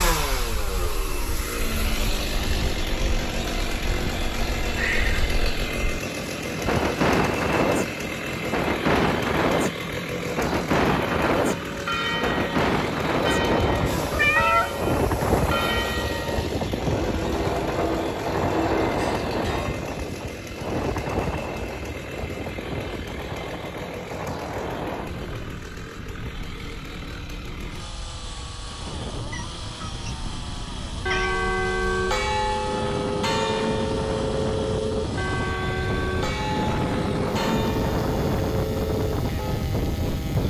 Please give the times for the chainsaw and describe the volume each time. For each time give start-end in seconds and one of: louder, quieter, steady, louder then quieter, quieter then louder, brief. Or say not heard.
0.0-40.4 quieter.